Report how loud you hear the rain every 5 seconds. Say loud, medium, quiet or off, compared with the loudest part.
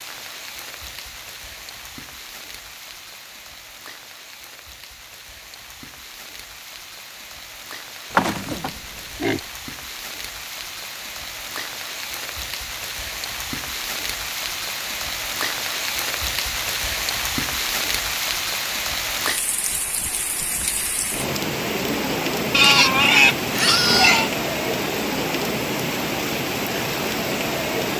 quiet, quiet, medium, loud, loud, loud.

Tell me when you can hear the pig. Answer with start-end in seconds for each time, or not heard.
8.1-9.4, 22.5-24.3.